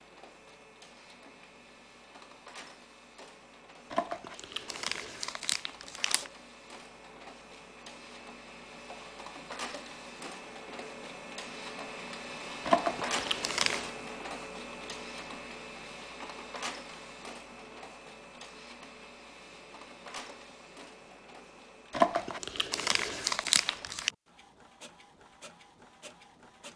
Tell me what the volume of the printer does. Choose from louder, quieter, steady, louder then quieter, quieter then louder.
louder then quieter.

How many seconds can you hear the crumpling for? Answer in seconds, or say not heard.
6 s.